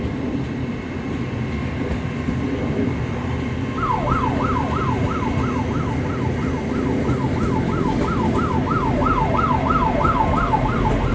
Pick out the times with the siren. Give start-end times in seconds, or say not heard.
3.8-11.0.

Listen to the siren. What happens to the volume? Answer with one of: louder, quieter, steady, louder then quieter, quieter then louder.
quieter then louder.